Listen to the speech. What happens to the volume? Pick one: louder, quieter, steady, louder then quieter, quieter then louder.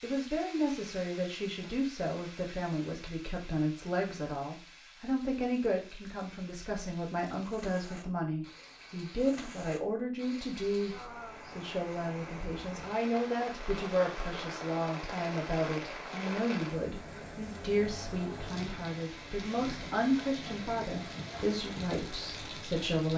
steady.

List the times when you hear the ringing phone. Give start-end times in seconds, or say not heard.
not heard.